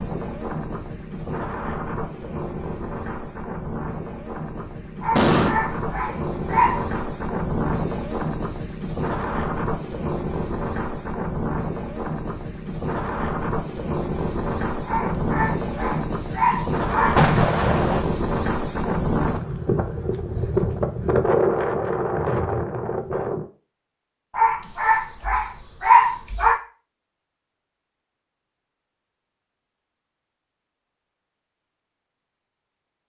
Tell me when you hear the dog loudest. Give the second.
26 s.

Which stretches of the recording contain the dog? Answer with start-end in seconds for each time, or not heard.
5.0-7.0, 14.8-17.2, 24.4-26.6.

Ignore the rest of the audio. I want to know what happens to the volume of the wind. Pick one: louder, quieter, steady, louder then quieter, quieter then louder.
louder.